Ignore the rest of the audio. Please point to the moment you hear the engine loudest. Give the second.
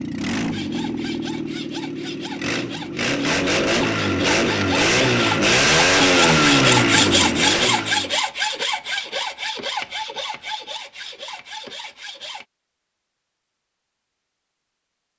6 s.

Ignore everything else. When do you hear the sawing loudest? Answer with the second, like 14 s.
7 s.